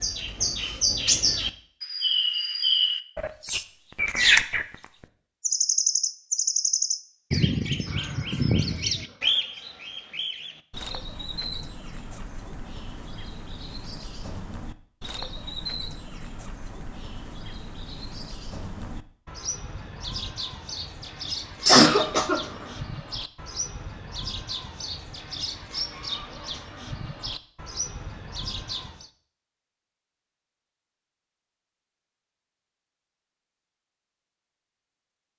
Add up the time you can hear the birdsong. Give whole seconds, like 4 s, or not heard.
29 s.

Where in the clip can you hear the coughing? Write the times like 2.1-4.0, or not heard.
21.6-22.4.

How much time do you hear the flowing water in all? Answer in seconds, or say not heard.
not heard.